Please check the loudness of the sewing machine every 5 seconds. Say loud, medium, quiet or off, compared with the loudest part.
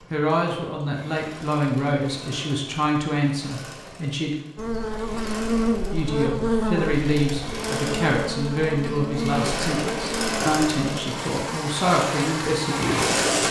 quiet, medium, loud.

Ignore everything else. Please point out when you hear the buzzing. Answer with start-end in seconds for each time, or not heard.
4.5-13.4.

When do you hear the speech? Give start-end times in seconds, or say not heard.
0.1-4.3, 5.9-13.2.